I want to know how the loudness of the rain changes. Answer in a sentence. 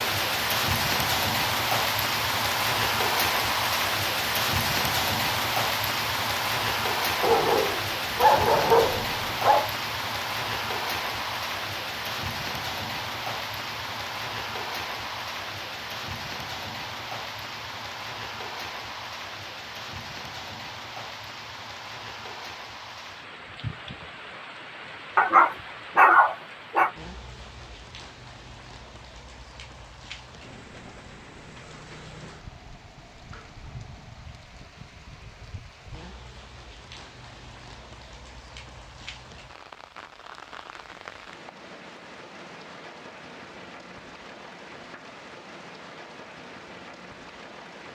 The loudness of the rain goes down.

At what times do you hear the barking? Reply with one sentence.
You can hear the barking from 7.2 to 9.7 s and from 25.1 to 26.9 s.